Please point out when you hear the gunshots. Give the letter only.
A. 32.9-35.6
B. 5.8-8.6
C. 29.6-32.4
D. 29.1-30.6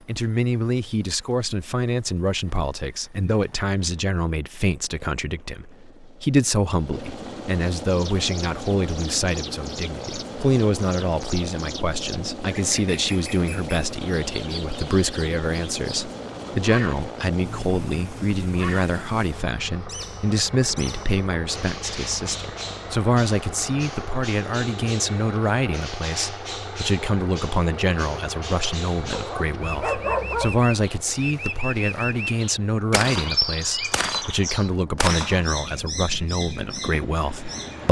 A.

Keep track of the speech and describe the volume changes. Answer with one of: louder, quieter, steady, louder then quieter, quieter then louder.
steady.